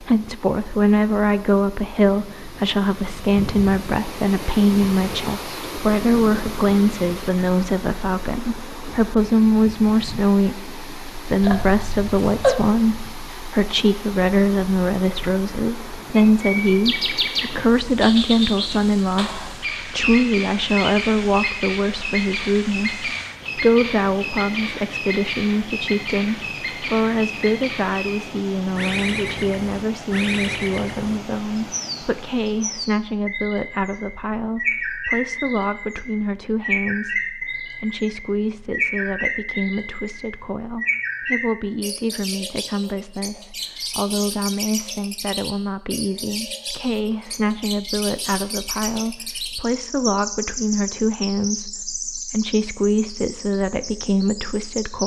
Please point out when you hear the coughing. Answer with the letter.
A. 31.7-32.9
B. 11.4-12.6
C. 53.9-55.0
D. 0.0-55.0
B.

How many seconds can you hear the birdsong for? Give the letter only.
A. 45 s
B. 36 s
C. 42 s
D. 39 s
D.